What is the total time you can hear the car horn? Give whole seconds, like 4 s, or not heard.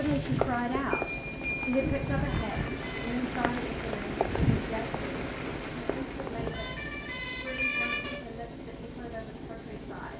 3 s.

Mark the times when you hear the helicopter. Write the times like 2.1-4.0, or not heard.
0.0-10.1.